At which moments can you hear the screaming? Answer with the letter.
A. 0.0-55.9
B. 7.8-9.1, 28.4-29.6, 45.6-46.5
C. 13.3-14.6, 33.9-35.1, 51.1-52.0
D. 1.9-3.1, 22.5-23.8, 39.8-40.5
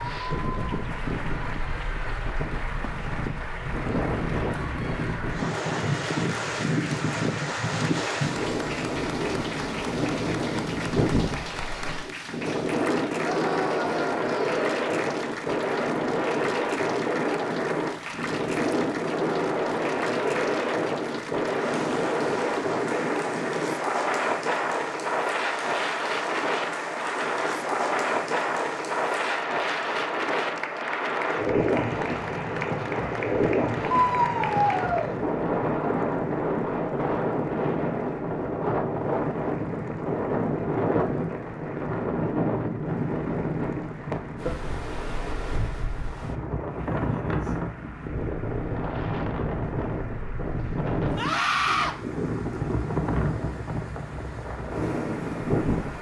C.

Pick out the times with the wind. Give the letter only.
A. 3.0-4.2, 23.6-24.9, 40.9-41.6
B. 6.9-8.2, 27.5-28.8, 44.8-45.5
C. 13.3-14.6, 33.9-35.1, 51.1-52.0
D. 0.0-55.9
D.